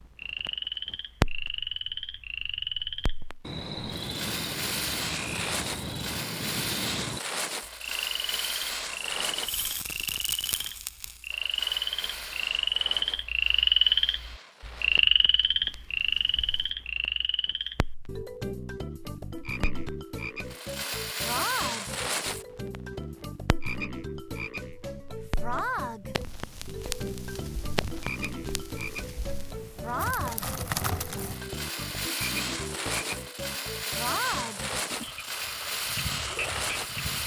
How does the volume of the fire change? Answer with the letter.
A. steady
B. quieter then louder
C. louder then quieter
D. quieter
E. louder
B.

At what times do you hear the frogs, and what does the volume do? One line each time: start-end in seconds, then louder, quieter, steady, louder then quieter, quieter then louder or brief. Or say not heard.
0.0-37.2 louder then quieter.